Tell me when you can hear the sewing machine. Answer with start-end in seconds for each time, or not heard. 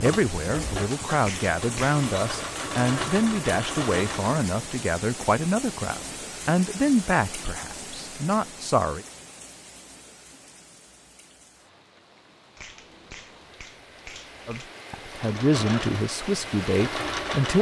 0.0-4.5, 15.1-17.5.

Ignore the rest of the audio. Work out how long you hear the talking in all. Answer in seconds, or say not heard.
12 s.